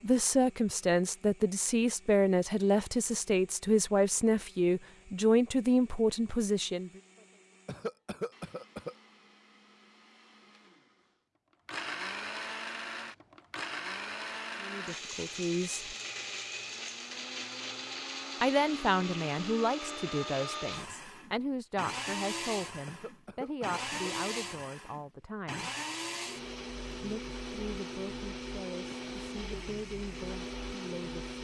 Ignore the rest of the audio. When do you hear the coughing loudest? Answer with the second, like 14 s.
8 s.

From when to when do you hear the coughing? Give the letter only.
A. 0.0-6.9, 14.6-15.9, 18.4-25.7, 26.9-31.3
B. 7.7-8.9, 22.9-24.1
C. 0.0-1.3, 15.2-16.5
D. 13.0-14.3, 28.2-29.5
B.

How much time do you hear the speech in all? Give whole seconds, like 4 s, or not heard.
20 s.